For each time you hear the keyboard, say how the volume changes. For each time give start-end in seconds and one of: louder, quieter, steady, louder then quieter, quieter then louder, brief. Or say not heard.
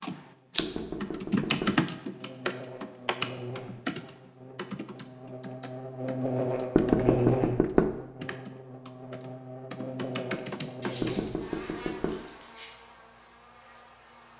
0.0-11.3 quieter then louder.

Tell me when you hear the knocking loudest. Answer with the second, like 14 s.
7 s.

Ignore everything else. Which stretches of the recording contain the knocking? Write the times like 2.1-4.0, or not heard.
0.6-1.8, 6.8-7.9, 11.0-12.2.